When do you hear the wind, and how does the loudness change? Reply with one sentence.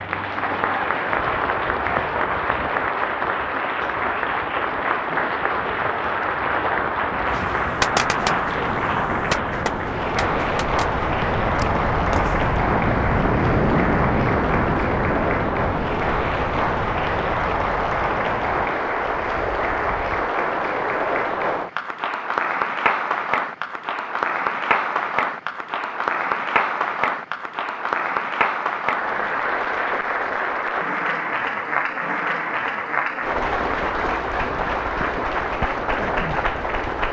The wind can be heard from 0.0 to 20.2 s, getting louder then quieter.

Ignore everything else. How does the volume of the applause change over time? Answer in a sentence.
The loudness of the applause stays about the same.